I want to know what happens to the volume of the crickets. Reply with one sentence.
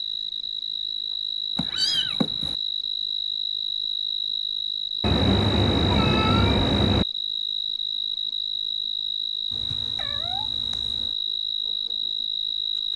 The volume of the crickets stays about the same.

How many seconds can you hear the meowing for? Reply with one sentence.
You can hear the meowing for 5 seconds altogether.